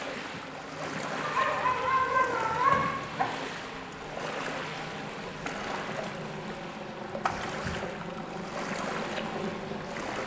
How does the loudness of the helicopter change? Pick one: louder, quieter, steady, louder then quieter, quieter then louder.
louder.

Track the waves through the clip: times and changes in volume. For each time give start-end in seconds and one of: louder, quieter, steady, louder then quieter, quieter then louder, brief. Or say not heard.
0.0-10.2 steady.